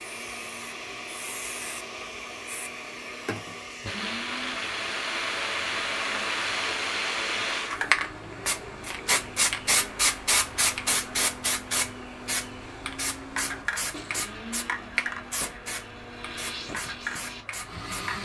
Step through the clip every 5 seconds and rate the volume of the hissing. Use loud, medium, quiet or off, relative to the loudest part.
medium, loud, loud, medium.